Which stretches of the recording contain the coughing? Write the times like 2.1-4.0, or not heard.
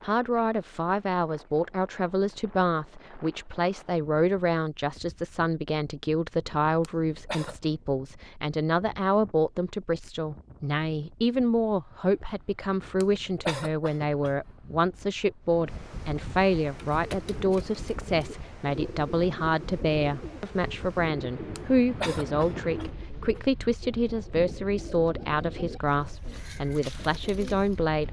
6.8-7.5, 13.0-14.8, 21.6-23.4.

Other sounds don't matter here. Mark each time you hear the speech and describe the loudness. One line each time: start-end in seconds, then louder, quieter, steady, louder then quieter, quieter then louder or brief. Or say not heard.
0.0-28.0 steady.